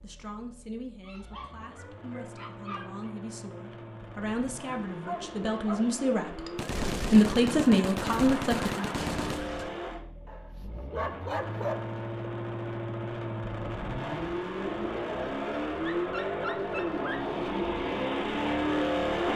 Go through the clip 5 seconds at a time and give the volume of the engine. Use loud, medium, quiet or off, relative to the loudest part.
quiet, medium, medium, loud.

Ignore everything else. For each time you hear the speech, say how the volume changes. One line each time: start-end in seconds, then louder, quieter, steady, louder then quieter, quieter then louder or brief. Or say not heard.
0.0-8.8 louder.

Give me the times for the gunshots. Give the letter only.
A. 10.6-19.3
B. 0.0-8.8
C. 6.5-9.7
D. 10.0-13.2
C.